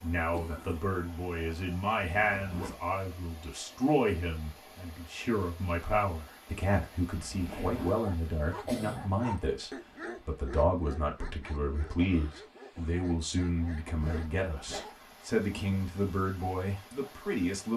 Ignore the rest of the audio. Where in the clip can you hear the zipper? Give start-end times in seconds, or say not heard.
2.1-2.9, 7.2-8.0, 13.9-14.8.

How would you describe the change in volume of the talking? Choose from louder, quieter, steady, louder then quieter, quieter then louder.
steady.